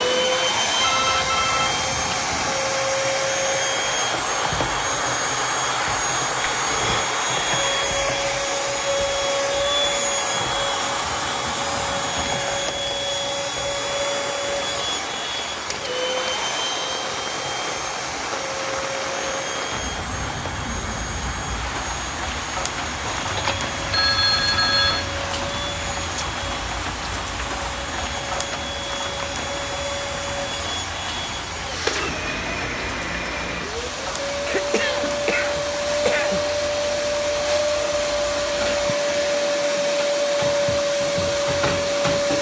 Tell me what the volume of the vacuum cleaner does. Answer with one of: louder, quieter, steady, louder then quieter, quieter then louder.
quieter then louder.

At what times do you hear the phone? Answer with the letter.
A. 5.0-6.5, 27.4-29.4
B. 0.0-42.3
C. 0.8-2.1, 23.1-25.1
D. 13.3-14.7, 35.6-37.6
C.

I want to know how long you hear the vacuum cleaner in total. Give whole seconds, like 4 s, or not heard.
42 s.